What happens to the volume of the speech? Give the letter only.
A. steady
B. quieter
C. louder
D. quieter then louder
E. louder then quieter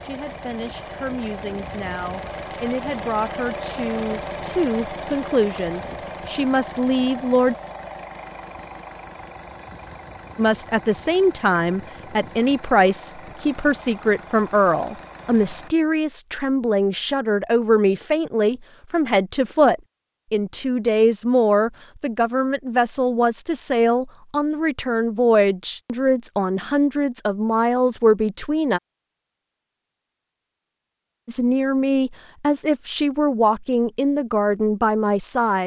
C.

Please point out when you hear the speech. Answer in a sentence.
You can hear the speech from 0.0 to 7.5 s, from 10.3 to 28.8 s and from 31.2 to 35.6 s.